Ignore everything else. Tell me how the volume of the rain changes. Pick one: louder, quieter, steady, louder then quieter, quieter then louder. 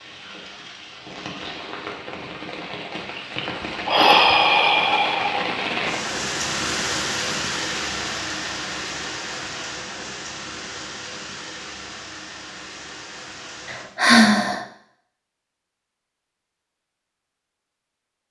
louder then quieter.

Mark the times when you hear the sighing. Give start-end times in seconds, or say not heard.
3.1-5.5, 13.7-14.7.